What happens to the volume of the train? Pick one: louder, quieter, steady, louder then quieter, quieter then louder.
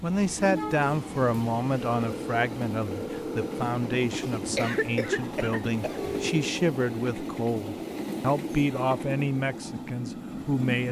steady.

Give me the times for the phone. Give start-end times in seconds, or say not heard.
1.9-3.8, 6.0-6.4.